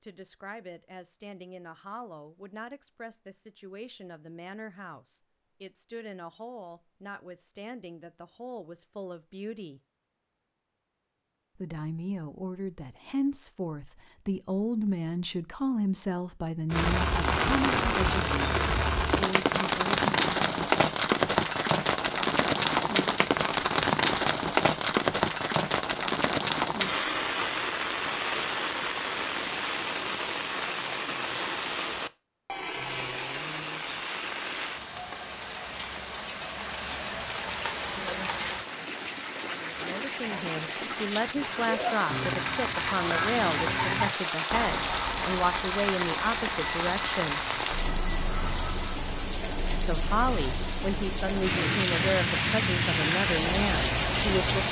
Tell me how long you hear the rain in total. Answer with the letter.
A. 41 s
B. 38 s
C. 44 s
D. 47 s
B.